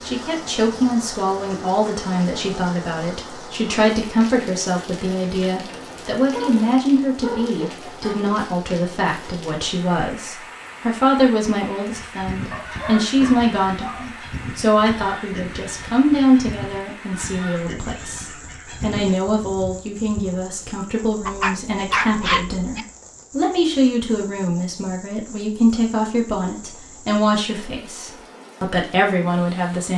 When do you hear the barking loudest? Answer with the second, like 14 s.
22 s.